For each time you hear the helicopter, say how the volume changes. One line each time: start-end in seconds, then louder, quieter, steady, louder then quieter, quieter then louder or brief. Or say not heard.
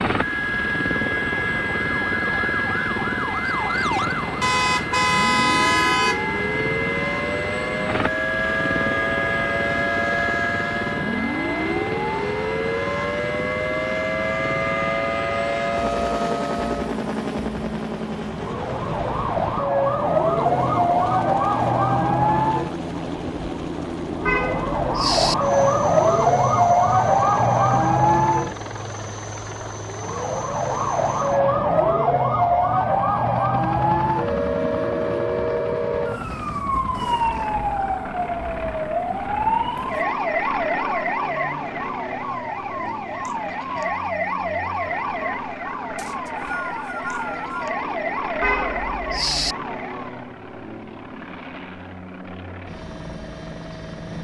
0.0-54.1 quieter.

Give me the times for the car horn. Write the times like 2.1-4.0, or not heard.
4.4-6.2, 24.2-25.4, 48.4-49.5.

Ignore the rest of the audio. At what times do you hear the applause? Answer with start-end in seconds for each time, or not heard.
not heard.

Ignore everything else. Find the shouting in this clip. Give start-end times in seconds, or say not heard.
not heard.